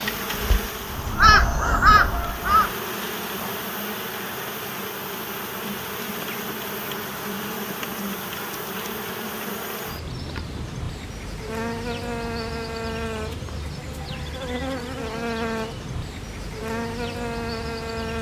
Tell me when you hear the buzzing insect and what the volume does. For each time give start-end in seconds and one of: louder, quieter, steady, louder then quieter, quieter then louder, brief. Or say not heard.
0.0-18.1 steady.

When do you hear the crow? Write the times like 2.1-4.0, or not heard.
0.0-2.8.